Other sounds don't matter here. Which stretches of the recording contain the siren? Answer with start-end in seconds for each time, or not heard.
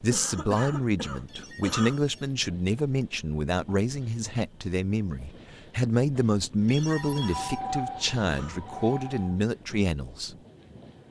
6.9-9.3.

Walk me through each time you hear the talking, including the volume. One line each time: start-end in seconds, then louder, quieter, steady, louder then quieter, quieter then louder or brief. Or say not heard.
0.0-10.3 steady.